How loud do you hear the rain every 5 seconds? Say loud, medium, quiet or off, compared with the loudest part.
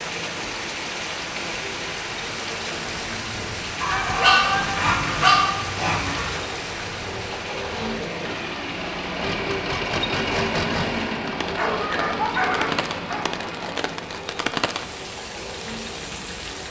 loud, loud, loud, medium.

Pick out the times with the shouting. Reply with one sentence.
The shouting can be heard from 3.9 to 4.7 s.